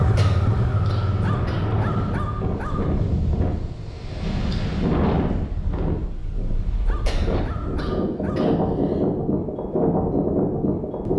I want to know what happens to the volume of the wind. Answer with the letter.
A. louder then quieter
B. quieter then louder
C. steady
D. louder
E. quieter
D.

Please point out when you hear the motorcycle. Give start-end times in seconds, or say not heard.
0.0-2.5.